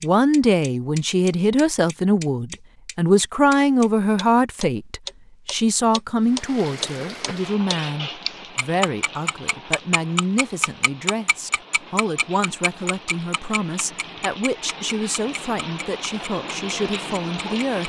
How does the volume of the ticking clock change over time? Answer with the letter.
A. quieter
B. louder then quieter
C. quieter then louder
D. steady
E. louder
B.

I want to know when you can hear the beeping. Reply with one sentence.
The beeping can't be heard in this clip.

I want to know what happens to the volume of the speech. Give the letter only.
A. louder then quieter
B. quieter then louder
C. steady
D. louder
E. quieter
E.